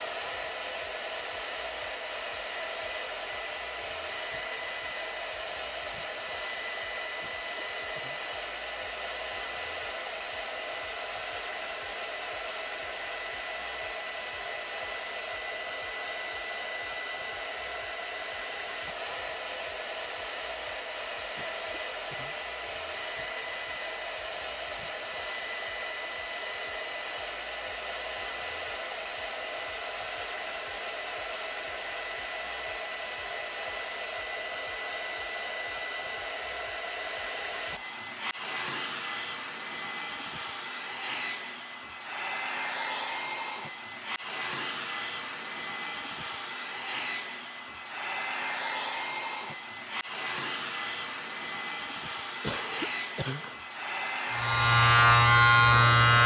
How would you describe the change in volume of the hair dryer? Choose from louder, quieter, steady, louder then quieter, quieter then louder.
steady.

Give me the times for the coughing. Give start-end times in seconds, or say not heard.
7.2-8.3, 21.4-22.4, 52.4-53.5.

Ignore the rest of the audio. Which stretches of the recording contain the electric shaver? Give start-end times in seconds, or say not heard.
54.3-56.2.